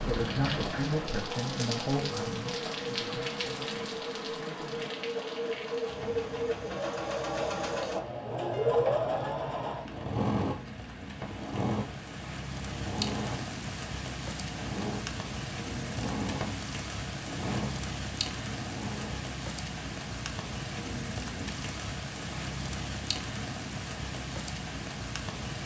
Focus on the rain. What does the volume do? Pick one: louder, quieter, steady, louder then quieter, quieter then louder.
quieter then louder.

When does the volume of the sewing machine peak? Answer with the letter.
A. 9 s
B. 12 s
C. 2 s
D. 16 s
A.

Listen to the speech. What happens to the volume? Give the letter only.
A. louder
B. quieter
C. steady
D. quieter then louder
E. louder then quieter
B.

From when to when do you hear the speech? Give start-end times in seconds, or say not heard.
0.1-5.0.